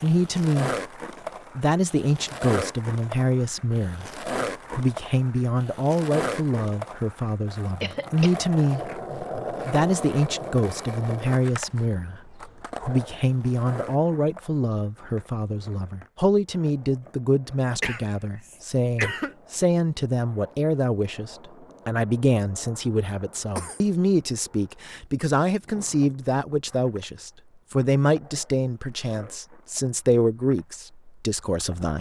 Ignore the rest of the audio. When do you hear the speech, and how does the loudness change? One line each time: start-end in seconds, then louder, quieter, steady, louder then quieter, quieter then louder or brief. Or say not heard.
0.0-0.8 brief
1.6-8.9 steady
9.7-31.9 steady.